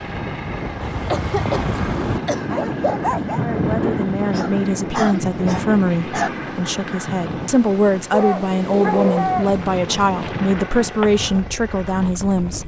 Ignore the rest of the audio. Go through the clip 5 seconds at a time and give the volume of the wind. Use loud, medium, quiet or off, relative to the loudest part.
loud, loud, medium.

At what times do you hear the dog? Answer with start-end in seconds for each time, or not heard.
0.8-3.4, 8.1-9.7.